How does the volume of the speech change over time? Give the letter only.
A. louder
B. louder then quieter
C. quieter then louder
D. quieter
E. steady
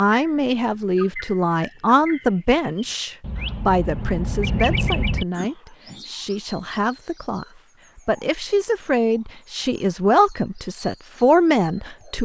C.